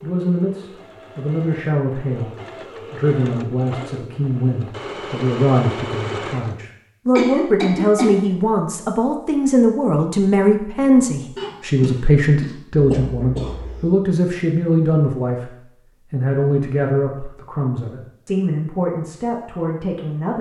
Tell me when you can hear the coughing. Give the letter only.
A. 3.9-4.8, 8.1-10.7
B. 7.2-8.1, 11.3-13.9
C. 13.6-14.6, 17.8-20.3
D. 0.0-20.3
B.